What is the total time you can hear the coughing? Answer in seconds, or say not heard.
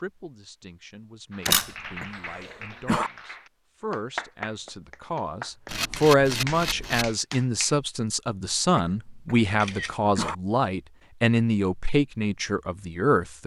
3 s.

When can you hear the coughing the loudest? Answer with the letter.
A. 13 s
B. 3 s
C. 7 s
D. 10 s
B.